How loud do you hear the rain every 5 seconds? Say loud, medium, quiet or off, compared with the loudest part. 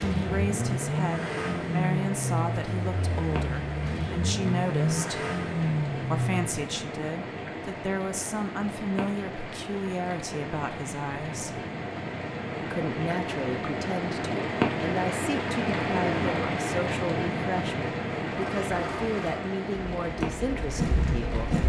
medium, medium, loud, loud, medium.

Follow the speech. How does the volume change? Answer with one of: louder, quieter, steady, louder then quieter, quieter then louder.
steady.